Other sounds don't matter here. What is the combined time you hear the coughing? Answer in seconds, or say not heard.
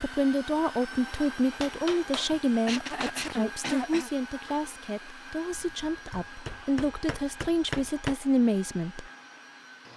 2 s.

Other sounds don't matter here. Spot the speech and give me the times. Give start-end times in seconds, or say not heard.
0.0-9.1.